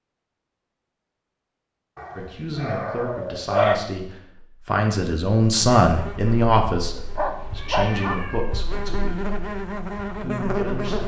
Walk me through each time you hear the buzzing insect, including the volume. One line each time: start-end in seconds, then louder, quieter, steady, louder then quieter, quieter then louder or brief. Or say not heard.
5.8-11.0 louder.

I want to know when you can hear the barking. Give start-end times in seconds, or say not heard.
1.9-3.8, 7.0-8.2.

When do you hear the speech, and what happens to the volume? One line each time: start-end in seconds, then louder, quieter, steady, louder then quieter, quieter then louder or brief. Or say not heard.
2.1-9.3 louder then quieter
10.1-11.0 brief.